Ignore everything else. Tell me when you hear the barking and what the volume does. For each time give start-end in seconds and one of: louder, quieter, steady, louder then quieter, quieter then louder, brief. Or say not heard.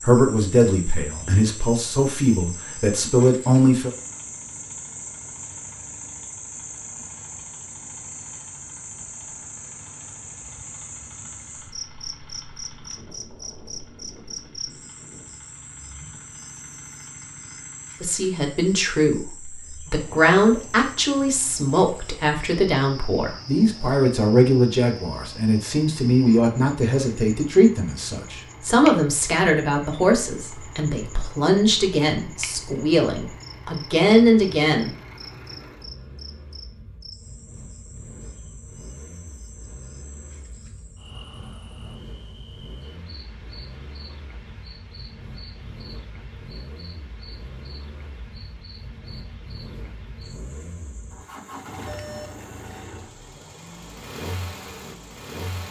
not heard.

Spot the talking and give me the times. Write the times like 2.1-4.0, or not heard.
0.0-3.9, 18.0-34.9.